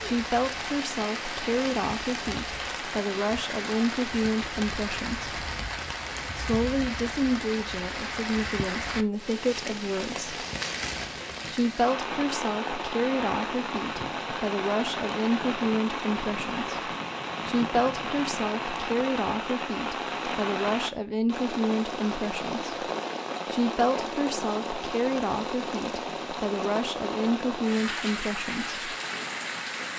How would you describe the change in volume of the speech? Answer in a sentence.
The loudness of the speech stays about the same.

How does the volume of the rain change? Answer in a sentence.
The volume of the rain stays about the same.